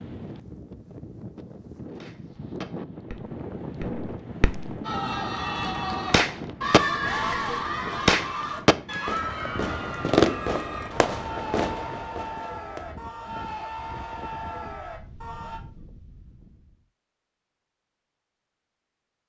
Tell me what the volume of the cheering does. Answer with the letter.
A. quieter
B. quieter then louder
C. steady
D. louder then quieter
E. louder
A.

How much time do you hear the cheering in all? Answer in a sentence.
The cheering can be heard for 11 seconds in total.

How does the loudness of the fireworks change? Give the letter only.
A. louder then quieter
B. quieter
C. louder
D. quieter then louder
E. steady
A.